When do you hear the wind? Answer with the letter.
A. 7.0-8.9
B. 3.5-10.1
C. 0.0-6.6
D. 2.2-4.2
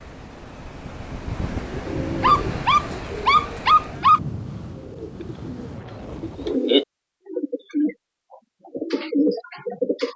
C.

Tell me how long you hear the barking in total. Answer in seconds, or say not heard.
2 s.